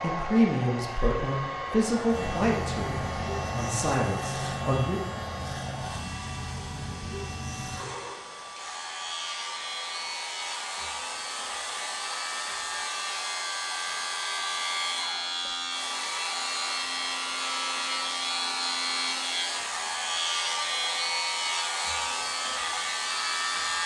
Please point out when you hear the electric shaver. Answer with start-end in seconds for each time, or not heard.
2.0-23.8.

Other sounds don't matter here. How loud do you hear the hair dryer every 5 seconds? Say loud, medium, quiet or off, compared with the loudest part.
loud, medium, loud, loud, loud.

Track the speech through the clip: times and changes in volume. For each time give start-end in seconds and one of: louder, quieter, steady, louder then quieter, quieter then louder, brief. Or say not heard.
0.0-5.0 quieter then louder.